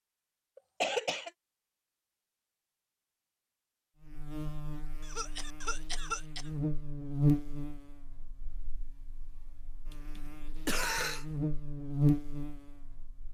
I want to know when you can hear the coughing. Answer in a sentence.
The coughing can be heard from 0.6 to 1.3 s, from 5.0 to 6.5 s and from 9.9 to 11.2 s.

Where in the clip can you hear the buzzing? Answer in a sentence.
You can hear the buzzing from 4.0 to 13.3 s.